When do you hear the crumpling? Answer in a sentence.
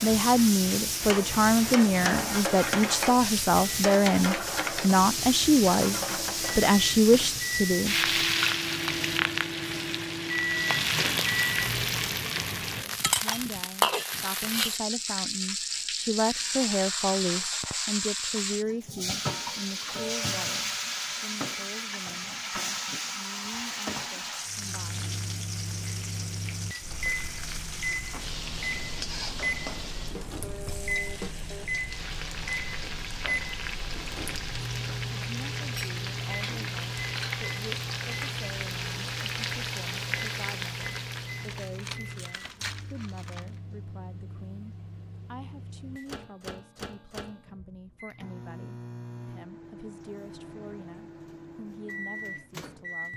The crumpling can be heard from 41.0 to 43.5 s.